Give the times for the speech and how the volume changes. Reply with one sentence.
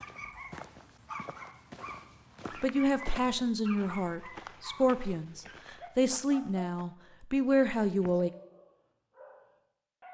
The speech can be heard from 2.6 to 8.3 s, getting quieter then louder.